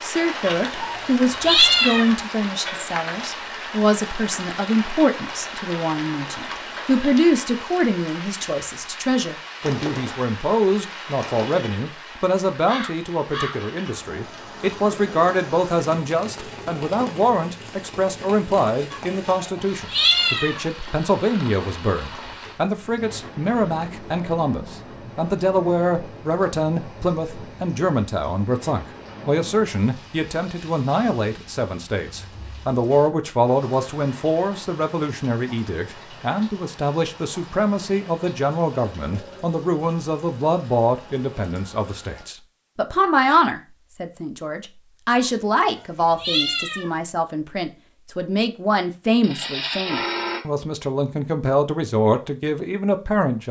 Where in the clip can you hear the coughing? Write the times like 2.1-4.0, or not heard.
not heard.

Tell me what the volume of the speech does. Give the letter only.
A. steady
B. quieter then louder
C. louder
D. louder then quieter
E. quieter
A.